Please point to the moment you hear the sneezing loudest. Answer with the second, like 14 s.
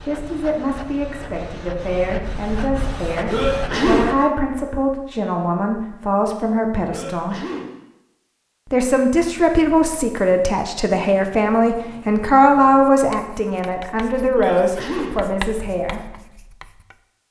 4 s.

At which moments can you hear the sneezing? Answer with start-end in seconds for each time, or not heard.
3.2-4.0, 6.8-7.7, 14.3-15.2.